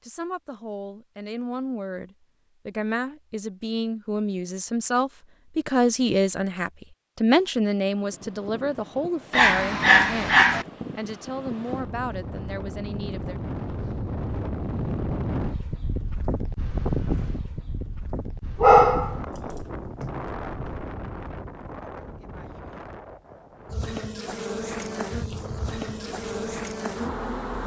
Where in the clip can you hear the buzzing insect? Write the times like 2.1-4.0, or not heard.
23.6-27.6.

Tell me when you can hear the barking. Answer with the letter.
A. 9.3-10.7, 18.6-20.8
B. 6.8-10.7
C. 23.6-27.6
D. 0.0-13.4
A.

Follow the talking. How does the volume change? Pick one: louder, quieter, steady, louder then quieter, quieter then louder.
louder then quieter.